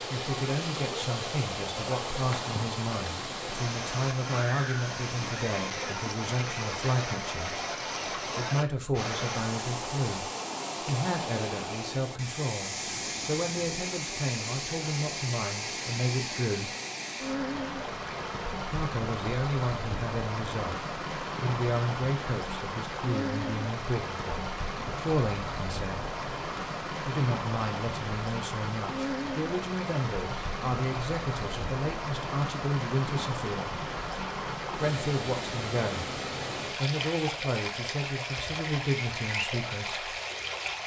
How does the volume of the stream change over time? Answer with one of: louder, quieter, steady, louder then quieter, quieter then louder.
steady.